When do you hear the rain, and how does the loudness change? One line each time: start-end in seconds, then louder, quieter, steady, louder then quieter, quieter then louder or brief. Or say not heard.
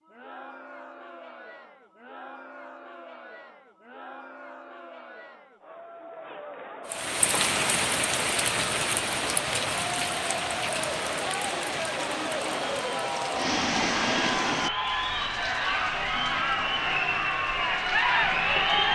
6.9-18.9 quieter.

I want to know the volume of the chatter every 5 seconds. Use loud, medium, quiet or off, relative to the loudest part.
quiet, quiet, medium, loud.